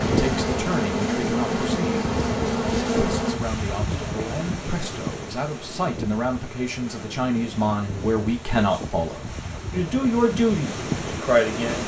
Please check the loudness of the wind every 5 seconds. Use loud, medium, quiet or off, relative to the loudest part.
loud, medium, loud.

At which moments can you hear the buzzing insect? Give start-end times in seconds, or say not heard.
0.0-3.4.